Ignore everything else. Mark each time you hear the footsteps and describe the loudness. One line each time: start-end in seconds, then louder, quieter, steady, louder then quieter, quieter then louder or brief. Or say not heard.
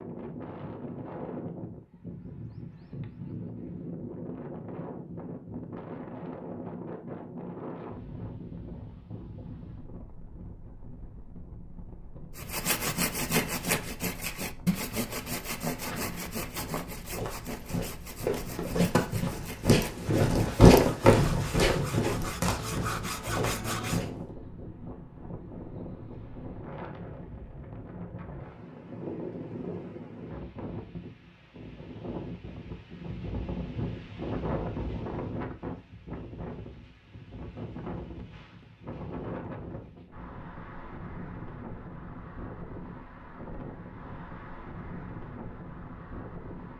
15.8-24.1 louder then quieter.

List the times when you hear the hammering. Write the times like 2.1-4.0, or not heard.
not heard.